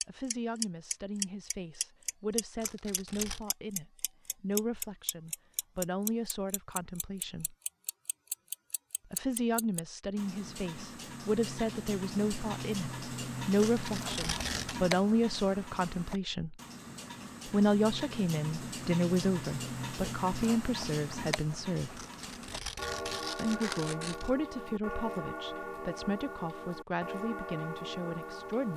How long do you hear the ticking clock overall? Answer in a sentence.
You can hear the ticking clock for 29 seconds altogether.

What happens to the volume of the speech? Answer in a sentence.
The loudness of the speech goes up, then down.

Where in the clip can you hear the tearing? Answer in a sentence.
You can hear the tearing from 2.6 to 3.5 s, from 13.6 to 14.8 s and from 21.9 to 24.3 s.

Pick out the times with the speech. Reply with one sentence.
You can hear the speech from 0.1 to 7.5 s, from 9.1 to 16.6 s, from 17.4 to 22.0 s and from 23.4 to 28.7 s.